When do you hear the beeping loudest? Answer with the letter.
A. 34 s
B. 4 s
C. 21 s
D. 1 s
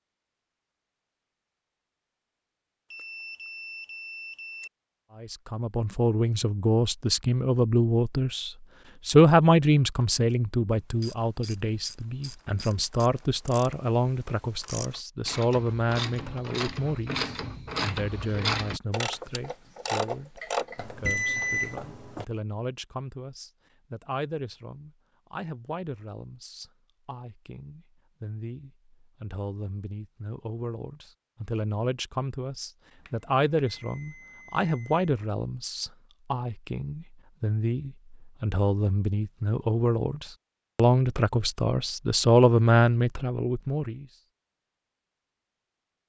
C.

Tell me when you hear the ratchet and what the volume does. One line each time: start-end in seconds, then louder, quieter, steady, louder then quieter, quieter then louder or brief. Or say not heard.
11.0-21.2 louder.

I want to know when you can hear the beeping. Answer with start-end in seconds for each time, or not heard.
2.9-4.7, 20.8-22.2, 33.0-35.0.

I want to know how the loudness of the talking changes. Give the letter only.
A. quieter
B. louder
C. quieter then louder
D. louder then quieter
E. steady
C.